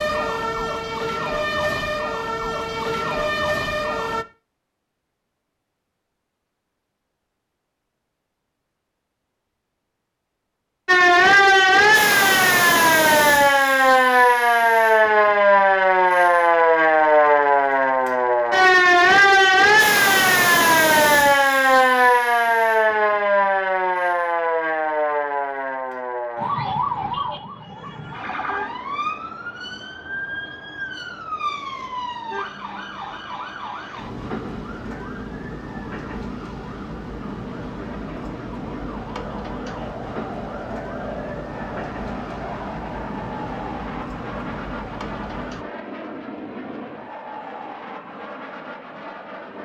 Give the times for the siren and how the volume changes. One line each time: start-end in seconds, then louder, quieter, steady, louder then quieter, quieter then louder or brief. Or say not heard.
0.0-4.2 steady
10.8-45.6 quieter.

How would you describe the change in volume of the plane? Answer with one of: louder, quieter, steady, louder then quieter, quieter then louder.
steady.